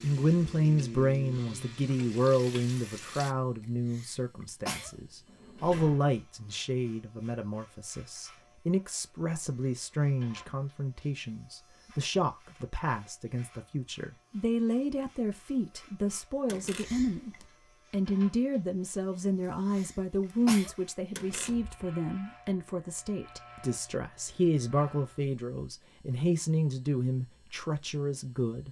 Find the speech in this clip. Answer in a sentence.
You can hear the speech from 0.0 to 17.3 s and from 17.9 to 28.6 s.